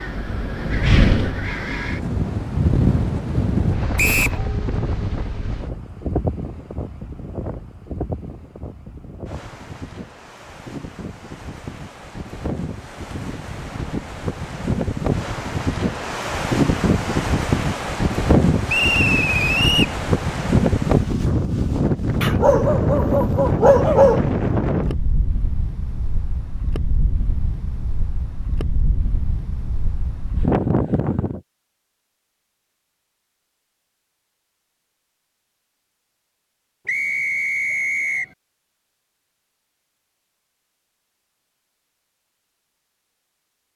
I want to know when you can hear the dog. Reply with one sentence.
The dog can be heard from 22.2 to 24.2 s.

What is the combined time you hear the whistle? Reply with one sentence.
You can hear the whistle for 3 seconds altogether.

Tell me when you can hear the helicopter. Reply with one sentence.
You can't hear the helicopter here.